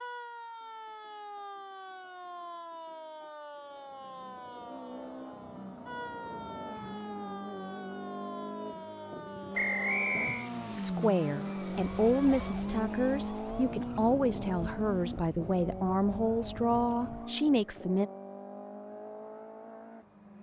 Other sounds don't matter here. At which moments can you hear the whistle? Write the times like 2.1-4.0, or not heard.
9.5-10.5.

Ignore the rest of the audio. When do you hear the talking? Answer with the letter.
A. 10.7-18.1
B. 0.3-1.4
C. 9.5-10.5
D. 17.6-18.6
A.